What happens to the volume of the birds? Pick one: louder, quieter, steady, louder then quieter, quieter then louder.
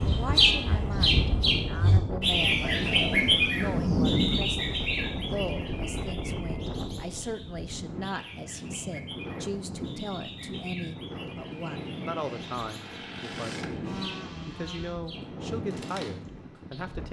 quieter.